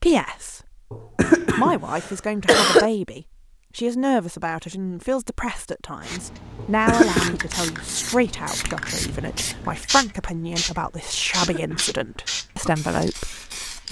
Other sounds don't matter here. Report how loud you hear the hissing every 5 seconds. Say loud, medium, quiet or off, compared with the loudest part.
off, loud, loud.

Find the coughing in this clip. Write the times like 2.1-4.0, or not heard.
0.9-2.9, 6.5-7.4, 11.1-12.1.